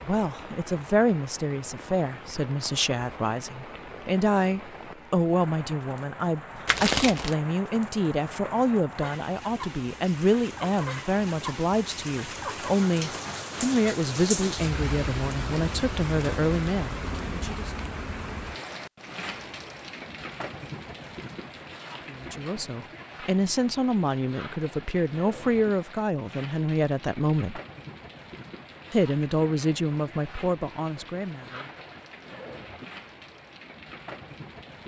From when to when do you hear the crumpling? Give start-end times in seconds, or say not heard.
6.7-7.3.